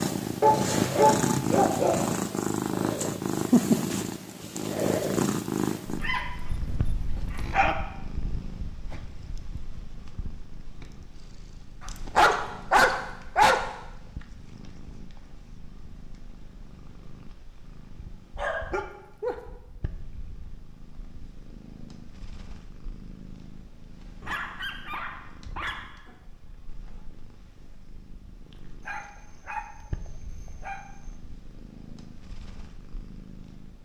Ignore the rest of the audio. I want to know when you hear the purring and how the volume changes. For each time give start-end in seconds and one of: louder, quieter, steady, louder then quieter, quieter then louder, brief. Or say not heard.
0.0-33.7 quieter.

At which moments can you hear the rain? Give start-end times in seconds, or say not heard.
not heard.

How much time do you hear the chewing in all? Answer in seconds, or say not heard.
not heard.